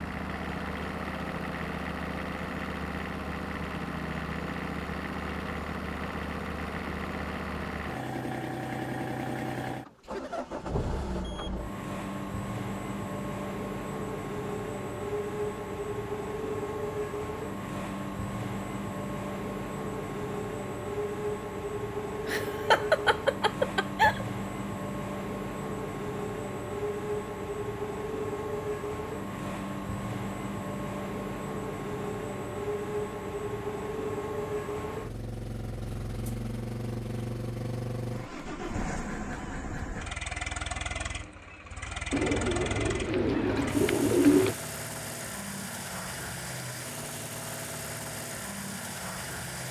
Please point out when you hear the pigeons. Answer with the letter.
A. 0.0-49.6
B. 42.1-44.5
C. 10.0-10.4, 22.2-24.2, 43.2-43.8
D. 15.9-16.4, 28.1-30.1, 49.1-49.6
B.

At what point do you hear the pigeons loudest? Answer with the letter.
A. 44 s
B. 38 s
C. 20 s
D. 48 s
A.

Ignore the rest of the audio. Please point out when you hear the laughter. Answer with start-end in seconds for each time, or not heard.
10.0-10.4, 22.2-24.2, 43.2-43.8.